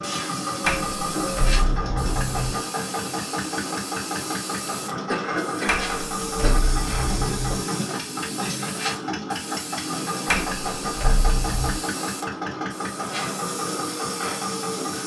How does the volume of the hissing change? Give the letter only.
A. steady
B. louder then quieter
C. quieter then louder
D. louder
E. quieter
A.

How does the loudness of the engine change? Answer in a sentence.
The volume of the engine stays about the same.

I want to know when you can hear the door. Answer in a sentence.
You can hear the door from 0.7 to 2.6 s, from 5.7 to 7.6 s and from 10.2 to 11.8 s.